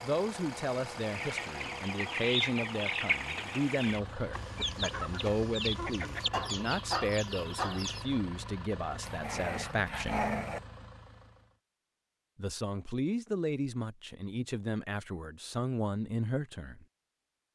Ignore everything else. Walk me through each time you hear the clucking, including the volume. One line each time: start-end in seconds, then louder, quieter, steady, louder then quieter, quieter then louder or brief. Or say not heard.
1.1-8.2 steady.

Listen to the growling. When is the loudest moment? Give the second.
10 s.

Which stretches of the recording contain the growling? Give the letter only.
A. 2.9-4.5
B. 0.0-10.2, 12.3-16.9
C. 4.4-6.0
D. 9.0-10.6
D.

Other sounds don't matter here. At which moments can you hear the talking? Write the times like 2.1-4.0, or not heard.
0.0-10.2, 12.3-16.9.